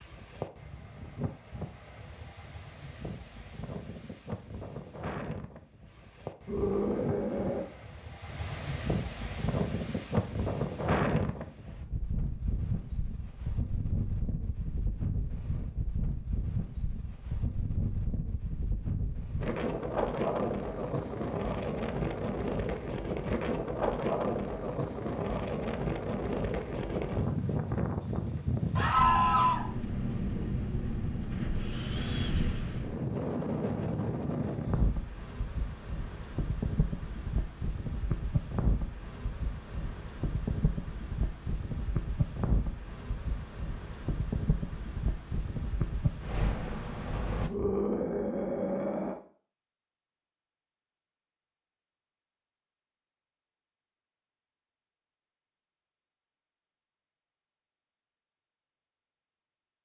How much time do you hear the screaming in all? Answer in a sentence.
You can hear the screaming for 4 seconds altogether.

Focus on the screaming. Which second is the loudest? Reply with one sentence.
The loudest moment of the screaming is at 29 seconds.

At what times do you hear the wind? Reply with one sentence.
You can hear the wind from 0.0 to 47.5 s.